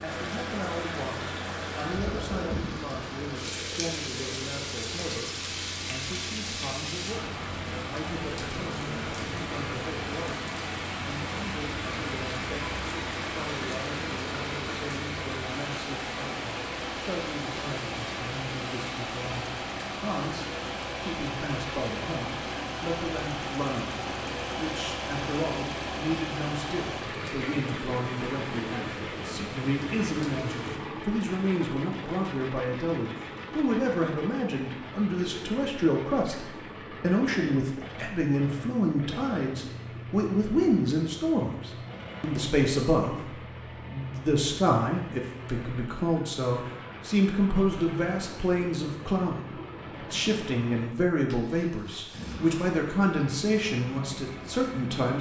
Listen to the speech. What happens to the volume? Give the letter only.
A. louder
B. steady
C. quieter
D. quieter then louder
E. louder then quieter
A.